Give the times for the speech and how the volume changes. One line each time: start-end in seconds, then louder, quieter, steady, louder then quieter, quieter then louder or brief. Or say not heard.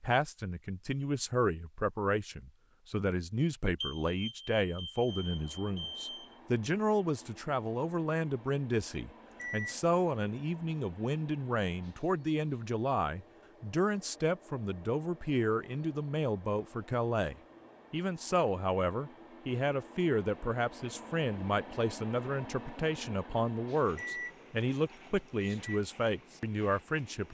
0.0-27.2 steady.